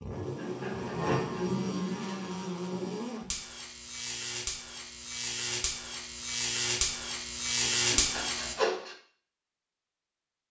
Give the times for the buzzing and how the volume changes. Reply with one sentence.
You can hear the buzzing from 0.0 to 8.6 s, getting quieter then louder.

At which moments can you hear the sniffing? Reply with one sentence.
The sniffing can be heard from 0.3 to 1.5 s and from 7.6 to 8.9 s.